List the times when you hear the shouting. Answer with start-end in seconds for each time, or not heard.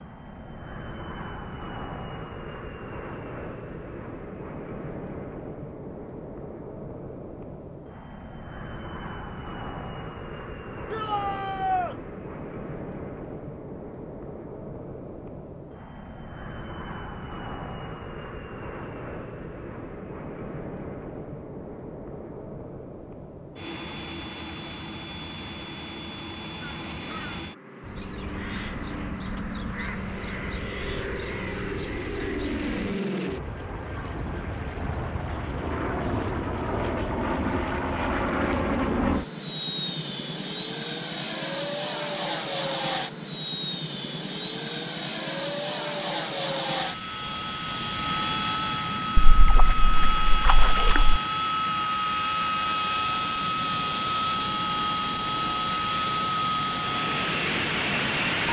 10.9-11.9.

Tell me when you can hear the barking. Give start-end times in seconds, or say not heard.
not heard.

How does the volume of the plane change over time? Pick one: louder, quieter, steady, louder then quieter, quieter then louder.
louder.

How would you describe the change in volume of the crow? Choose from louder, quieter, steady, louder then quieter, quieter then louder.
steady.